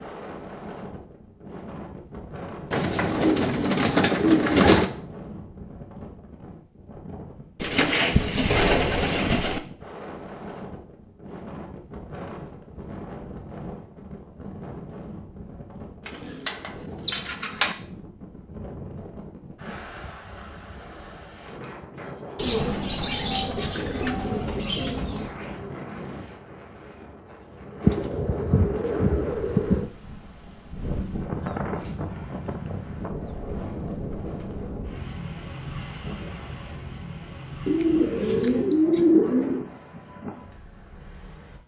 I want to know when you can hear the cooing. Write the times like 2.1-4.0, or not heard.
2.7-4.9, 7.6-9.6, 16.1-17.8, 22.4-25.4, 27.8-29.9, 37.6-39.6.